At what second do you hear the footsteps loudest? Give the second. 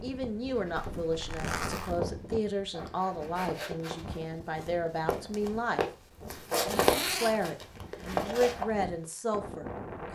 7 s.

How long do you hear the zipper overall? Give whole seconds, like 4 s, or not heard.
2 s.